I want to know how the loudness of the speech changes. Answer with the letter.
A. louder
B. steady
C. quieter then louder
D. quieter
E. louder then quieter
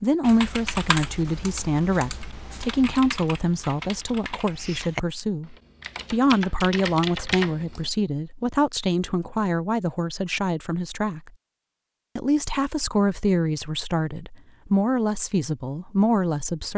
B.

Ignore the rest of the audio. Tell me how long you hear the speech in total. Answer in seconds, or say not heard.
16 s.